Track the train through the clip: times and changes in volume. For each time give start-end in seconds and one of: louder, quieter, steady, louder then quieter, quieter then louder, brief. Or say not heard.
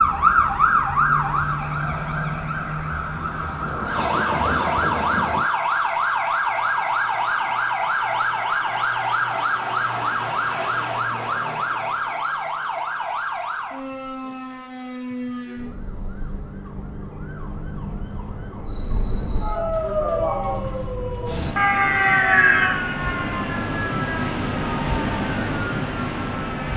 0.0-5.5 louder
18.6-26.7 louder.